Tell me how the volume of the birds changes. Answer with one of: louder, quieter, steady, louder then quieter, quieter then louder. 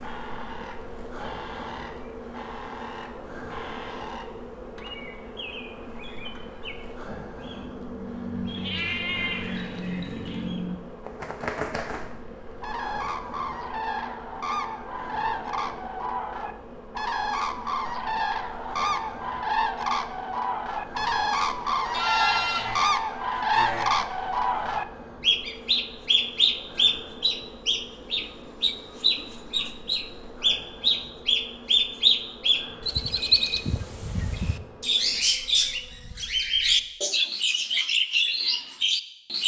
louder.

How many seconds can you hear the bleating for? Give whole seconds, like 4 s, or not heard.
4 s.